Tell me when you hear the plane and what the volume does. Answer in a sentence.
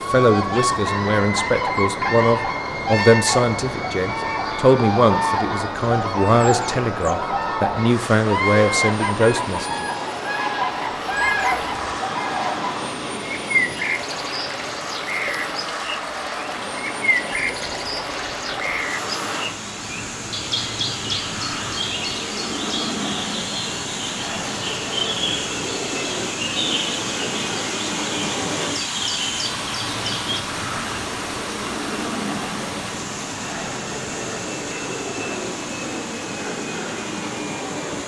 You can hear the plane from 0.0 to 38.0 s, at a steady volume.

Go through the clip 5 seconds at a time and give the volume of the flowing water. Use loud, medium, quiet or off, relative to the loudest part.
off, off, medium, medium, loud, loud, loud, medium.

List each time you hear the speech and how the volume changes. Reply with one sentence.
You can hear the speech from 0.1 to 9.8 s, at a steady volume.